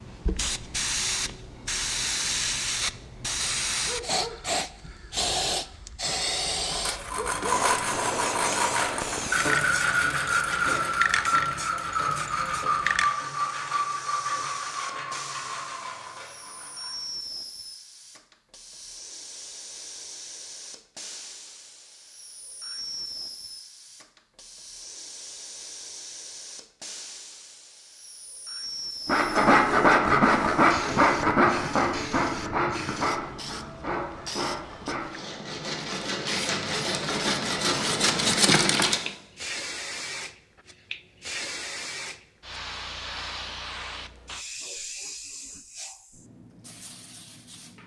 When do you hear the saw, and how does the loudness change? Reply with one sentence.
The saw can be heard from 6.7 to 17.0 s, getting quieter; and from 29.1 to 39.1 s, getting quieter then louder.